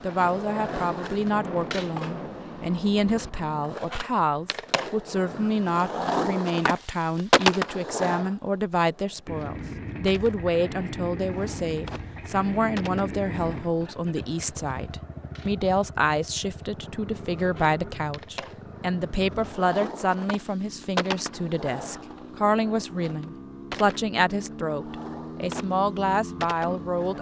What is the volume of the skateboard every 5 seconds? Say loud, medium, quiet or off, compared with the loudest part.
medium, loud, quiet, quiet, medium, medium.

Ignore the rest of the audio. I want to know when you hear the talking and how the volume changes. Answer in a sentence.
You can hear the talking from 0.0 to 27.1 s, at a steady volume.